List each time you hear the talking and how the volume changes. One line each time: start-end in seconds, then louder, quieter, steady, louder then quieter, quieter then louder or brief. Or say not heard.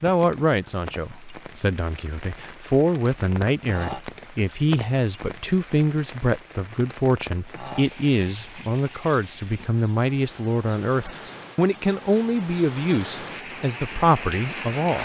0.0-15.0 steady.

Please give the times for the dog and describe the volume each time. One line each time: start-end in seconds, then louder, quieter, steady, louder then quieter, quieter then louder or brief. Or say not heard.
not heard.